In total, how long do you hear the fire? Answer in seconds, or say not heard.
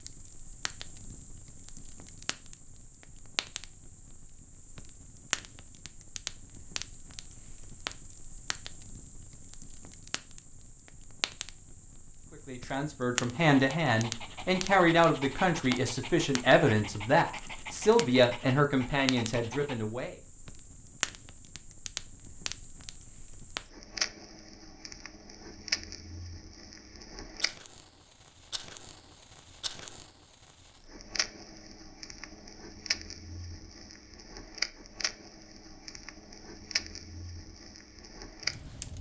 39 s.